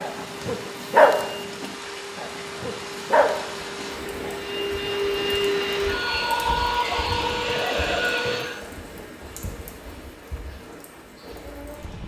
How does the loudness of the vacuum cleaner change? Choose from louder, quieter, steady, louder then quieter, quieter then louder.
louder.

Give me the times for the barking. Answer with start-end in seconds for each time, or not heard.
0.0-4.4.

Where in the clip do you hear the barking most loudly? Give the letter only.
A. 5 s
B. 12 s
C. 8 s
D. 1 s
D.